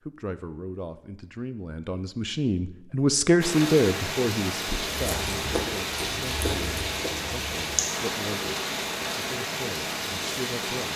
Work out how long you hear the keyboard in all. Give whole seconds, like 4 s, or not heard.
not heard.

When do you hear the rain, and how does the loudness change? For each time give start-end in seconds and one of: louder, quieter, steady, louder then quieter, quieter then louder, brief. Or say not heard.
3.4-10.9 steady.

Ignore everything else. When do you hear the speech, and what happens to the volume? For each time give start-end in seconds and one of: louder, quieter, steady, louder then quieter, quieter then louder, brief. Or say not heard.
0.0-8.6 louder then quieter
9.2-10.9 brief.